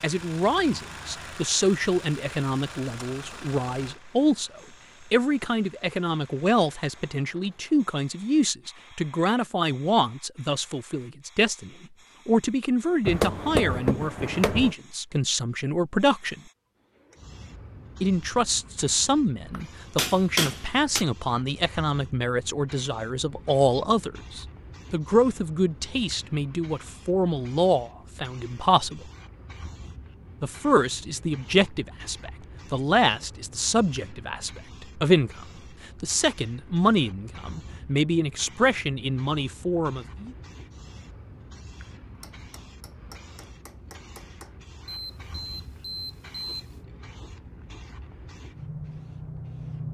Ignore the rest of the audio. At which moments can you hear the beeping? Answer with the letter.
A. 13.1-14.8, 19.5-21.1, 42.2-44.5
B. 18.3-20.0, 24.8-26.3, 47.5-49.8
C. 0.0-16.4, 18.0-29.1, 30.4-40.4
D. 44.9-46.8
D.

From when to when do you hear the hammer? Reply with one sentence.
The hammer can be heard from 13.1 to 14.8 s, from 19.5 to 21.1 s and from 42.2 to 44.5 s.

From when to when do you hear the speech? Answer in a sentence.
The speech can be heard from 0.0 to 16.4 s, from 18.0 to 29.1 s and from 30.4 to 40.4 s.